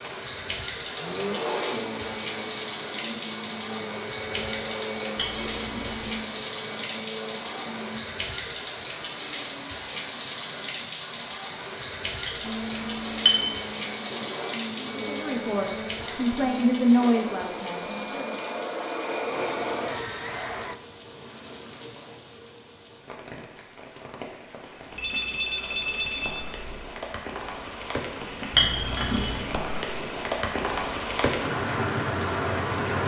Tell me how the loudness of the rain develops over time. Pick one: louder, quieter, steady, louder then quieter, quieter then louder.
quieter then louder.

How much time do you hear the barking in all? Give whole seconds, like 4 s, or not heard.
not heard.